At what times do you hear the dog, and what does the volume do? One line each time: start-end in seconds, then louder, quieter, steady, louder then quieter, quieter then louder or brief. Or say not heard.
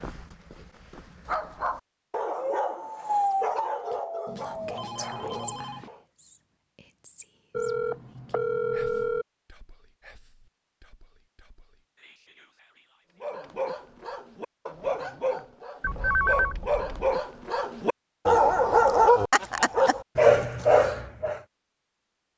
0.0-6.0 louder then quieter
13.2-21.4 louder.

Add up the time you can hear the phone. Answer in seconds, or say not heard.
5 s.